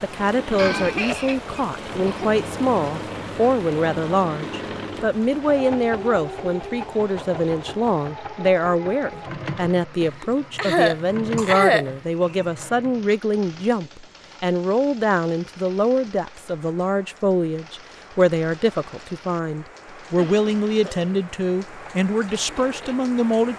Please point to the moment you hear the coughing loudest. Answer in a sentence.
The loudest moment of the coughing is at 12 seconds.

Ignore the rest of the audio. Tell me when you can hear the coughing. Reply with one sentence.
You can hear the coughing from 0.6 to 2.2 s, from 10.0 to 12.4 s and from 20.1 to 21.1 s.